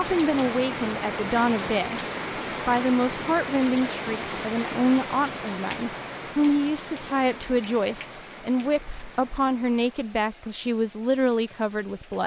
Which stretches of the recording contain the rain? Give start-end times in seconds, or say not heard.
0.0-12.2.